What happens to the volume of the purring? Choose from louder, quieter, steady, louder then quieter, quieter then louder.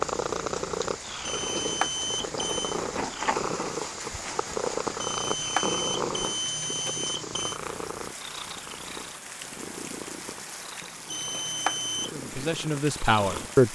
quieter.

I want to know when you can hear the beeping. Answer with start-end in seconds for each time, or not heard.
1.2-2.8, 5.0-7.6, 11.1-12.1.